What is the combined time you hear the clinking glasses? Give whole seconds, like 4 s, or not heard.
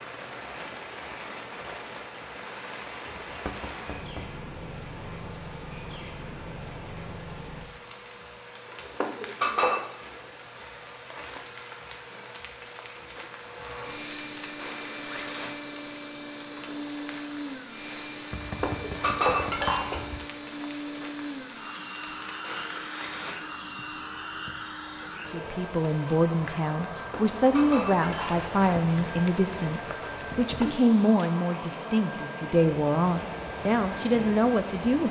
4 s.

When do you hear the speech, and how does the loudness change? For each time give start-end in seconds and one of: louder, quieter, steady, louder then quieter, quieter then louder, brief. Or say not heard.
25.3-35.0 steady.